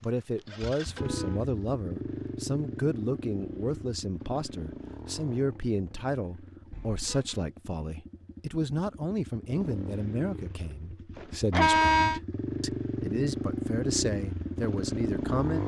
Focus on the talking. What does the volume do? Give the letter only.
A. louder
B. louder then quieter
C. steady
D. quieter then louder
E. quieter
C.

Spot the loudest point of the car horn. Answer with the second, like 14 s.
12 s.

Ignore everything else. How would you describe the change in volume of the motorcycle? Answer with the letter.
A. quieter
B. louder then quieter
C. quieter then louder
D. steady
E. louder
C.